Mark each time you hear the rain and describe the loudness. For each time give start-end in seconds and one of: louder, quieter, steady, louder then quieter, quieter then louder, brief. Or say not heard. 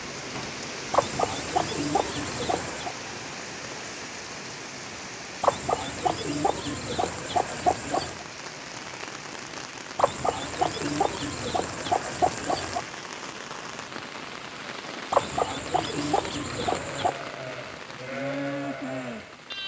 0.0-19.6 steady.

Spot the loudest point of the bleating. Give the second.
18 s.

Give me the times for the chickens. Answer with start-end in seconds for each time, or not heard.
0.9-3.0, 5.4-8.2, 9.9-12.8, 15.1-17.1.